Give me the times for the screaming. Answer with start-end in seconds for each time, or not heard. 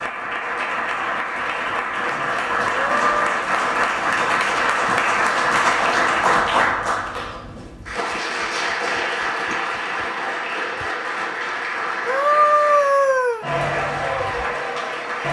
2.7-3.2, 12.1-13.4.